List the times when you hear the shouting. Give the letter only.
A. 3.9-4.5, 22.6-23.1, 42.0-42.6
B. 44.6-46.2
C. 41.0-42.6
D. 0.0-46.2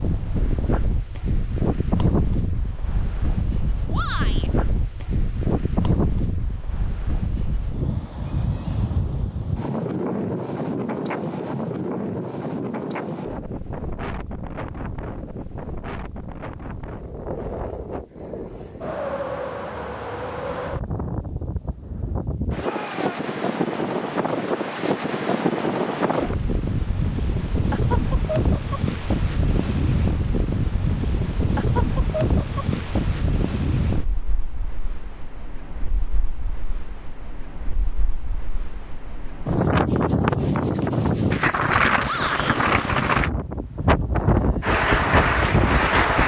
A.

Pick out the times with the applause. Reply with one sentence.
The applause can be heard from 44.6 to 46.2 s.